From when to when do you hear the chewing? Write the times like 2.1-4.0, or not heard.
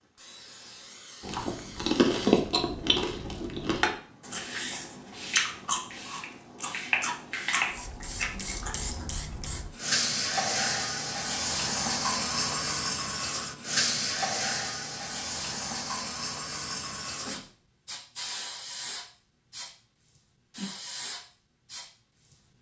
1.2-9.1.